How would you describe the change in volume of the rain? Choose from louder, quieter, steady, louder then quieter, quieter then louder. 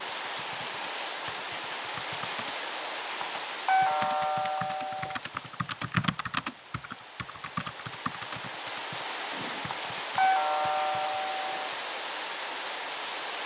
quieter then louder.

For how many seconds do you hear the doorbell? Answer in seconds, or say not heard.
4 s.